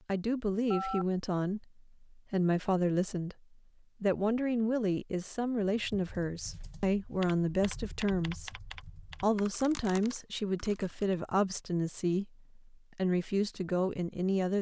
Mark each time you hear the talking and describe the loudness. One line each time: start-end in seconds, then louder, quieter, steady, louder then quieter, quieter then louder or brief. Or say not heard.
0.1-14.5 steady.